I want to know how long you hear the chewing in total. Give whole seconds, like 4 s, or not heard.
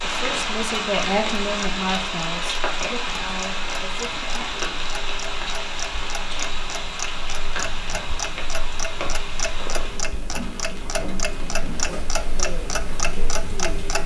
not heard.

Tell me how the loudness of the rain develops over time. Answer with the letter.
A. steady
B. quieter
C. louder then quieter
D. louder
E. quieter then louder
B.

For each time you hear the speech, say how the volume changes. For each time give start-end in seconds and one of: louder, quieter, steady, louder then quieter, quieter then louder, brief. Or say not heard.
0.0-4.6 quieter
11.7-13.8 brief.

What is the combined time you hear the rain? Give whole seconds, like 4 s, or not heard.
14 s.